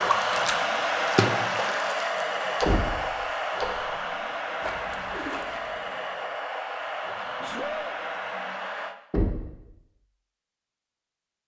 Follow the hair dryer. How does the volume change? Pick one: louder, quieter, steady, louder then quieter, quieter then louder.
quieter.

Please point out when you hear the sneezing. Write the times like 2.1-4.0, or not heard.
7.2-8.0.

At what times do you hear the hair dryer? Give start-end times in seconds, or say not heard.
0.0-8.9.